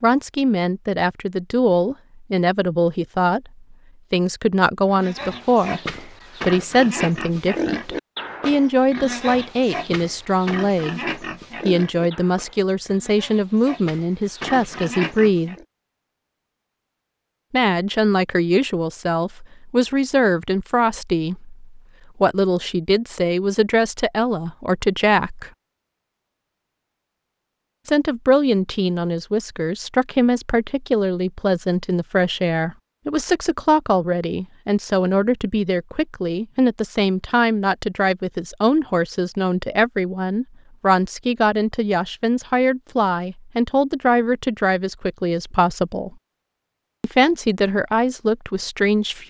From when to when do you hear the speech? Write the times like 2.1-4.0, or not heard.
0.0-11.0, 11.7-15.6, 17.5-25.5, 27.9-46.1, 47.0-49.2.